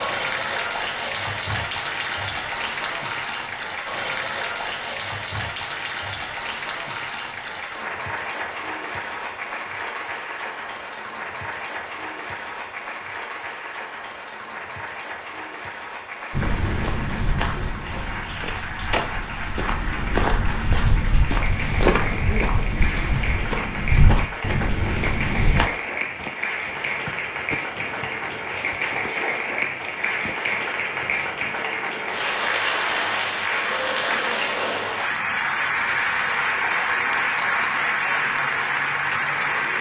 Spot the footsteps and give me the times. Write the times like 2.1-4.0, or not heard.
16.3-25.6.